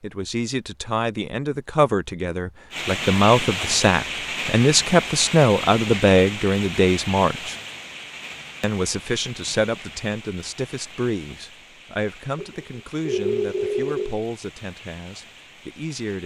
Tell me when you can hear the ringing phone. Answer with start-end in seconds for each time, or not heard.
12.3-14.2.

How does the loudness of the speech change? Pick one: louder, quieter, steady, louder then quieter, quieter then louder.
louder then quieter.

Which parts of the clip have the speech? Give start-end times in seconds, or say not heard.
0.0-7.5, 8.6-16.2.